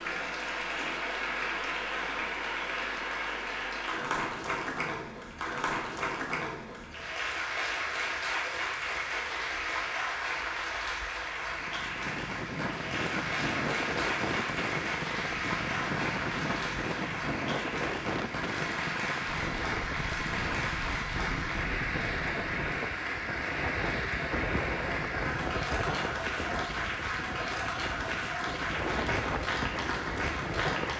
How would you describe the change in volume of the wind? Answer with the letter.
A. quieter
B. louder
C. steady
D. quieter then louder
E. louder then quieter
C.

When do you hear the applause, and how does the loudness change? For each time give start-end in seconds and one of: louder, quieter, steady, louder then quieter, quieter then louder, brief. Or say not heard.
0.0-30.9 steady.